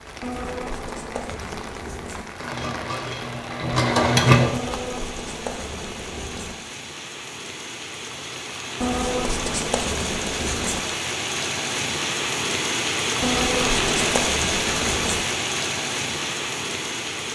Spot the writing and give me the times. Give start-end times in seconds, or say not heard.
0.2-2.2, 4.5-6.5, 8.8-10.8, 13.2-15.2.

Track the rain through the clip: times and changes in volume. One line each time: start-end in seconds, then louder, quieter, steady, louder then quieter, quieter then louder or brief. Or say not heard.
0.0-17.3 louder.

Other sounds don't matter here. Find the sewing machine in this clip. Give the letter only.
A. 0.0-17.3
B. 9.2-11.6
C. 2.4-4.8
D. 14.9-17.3
C.